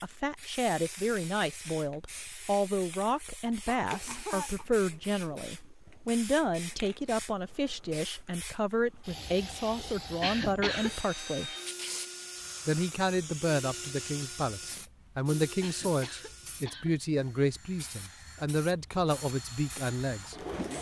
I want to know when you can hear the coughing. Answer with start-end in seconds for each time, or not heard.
3.5-4.7, 10.2-10.9, 15.6-16.9.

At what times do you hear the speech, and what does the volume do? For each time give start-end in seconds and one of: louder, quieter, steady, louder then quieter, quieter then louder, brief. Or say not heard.
0.0-11.6 steady
12.7-20.4 steady.